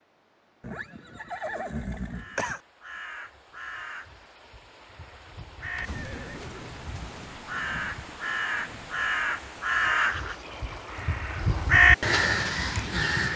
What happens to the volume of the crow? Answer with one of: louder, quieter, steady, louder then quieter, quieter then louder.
louder.